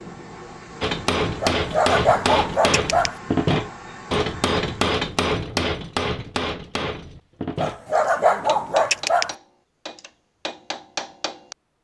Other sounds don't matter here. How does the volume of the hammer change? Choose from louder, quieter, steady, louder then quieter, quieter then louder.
quieter.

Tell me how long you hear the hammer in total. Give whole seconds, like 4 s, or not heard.
11 s.